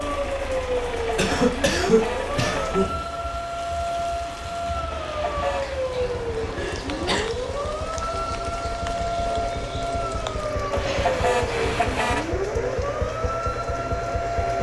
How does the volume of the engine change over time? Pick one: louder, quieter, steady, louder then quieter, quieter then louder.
quieter then louder.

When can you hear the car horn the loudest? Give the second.
11 s.